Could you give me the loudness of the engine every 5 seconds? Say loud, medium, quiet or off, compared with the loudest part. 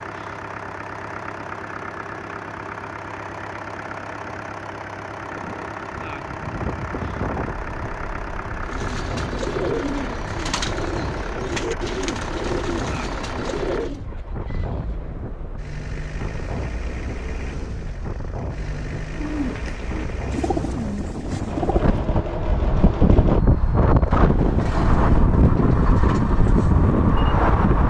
loud, loud, loud, medium, loud, loud.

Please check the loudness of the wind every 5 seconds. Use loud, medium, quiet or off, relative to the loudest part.
off, quiet, quiet, quiet, loud, loud.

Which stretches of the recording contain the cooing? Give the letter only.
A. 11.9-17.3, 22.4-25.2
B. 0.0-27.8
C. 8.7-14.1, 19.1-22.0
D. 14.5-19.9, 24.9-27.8
C.